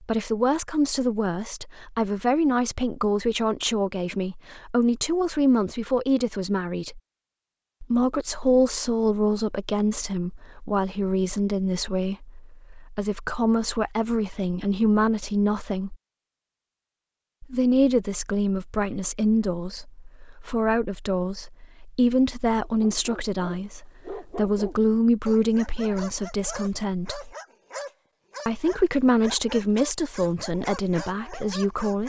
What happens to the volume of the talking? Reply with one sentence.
The volume of the talking stays about the same.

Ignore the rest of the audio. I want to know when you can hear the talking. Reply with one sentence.
The talking can be heard from 0.0 to 7.0 s, from 7.8 to 15.9 s, from 17.4 to 27.3 s and from 28.4 to 32.0 s.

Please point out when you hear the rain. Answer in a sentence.
You can't hear the rain here.